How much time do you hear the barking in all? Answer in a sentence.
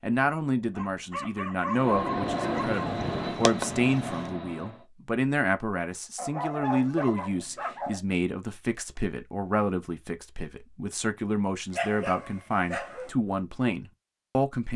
The barking can be heard for 5 seconds in total.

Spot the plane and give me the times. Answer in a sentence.
You can hear the plane from 1.7 to 4.8 s.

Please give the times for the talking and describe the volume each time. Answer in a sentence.
The talking can be heard from 0.0 to 14.7 s, at a steady volume.